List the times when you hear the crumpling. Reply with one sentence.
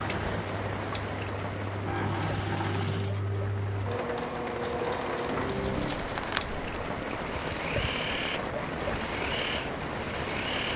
The crumpling can be heard from 5.5 to 6.4 s.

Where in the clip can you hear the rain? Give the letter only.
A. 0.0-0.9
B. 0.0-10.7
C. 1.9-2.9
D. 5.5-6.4
B.